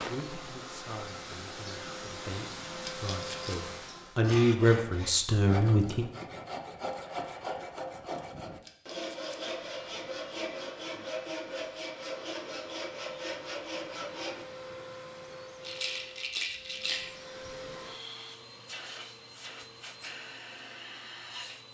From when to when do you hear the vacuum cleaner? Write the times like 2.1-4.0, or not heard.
0.0-4.2, 9.1-21.6.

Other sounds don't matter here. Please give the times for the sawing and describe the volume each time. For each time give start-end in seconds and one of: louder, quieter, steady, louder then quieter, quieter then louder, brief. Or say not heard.
4.2-14.4 steady.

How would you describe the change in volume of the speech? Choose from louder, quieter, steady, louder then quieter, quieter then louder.
louder.